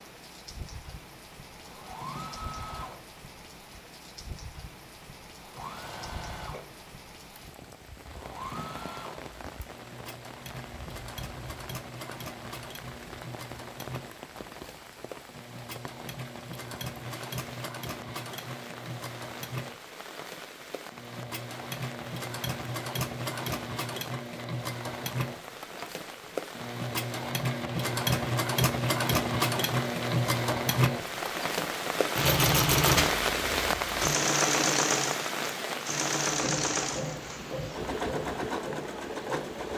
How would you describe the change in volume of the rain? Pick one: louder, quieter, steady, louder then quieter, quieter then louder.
louder.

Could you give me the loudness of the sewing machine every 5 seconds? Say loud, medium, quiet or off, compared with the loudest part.
quiet, quiet, quiet, quiet, medium, loud, loud, medium.